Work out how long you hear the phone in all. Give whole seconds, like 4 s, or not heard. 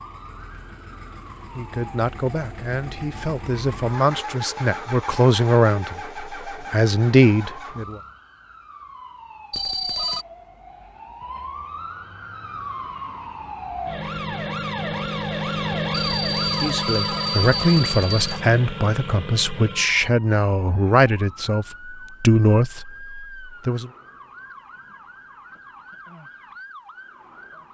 3 s.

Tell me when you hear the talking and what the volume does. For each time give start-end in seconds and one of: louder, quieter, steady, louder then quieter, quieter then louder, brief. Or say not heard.
1.6-8.0 louder
16.6-23.9 steady.